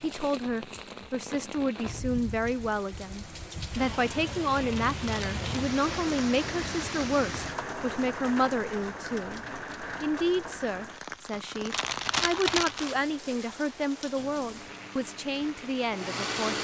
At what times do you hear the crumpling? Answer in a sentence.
You can hear the crumpling from 4.7 to 5.4 s and from 11.7 to 12.9 s.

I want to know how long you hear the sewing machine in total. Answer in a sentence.
The sewing machine can be heard for 2 seconds in total.